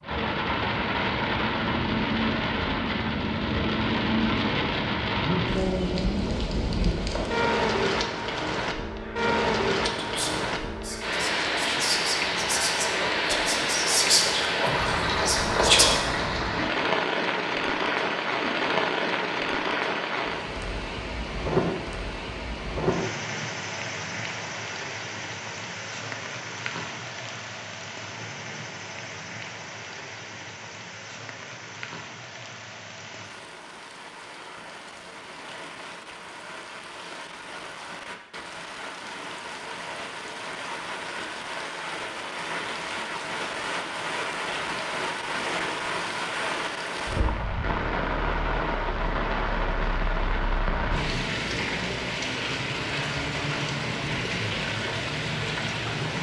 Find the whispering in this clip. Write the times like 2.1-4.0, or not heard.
9.9-16.0.